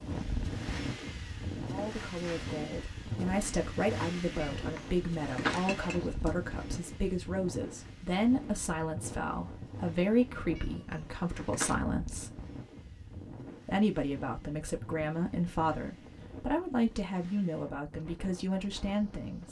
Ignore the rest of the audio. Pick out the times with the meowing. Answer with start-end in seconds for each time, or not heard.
4.5-6.3, 10.6-11.8.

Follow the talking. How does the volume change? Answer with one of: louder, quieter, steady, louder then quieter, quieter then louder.
steady.